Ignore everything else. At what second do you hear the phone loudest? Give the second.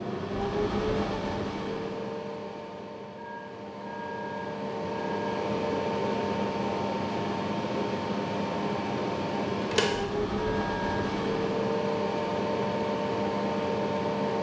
11 s.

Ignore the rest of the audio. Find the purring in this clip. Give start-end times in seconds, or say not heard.
not heard.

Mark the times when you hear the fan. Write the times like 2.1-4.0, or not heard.
0.0-14.3.